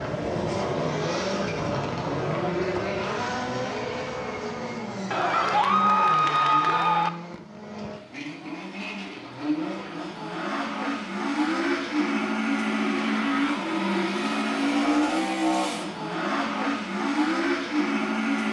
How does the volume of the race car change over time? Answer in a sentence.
The volume of the race car goes down, then up.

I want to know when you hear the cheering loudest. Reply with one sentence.
The loudest moment of the cheering is at 6 seconds.